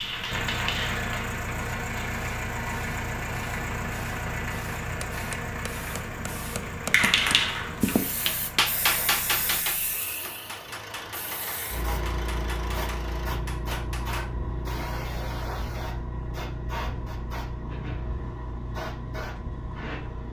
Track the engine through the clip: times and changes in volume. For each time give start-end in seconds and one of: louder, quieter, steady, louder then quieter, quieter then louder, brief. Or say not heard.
0.0-20.2 quieter.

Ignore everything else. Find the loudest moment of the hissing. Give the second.
7 s.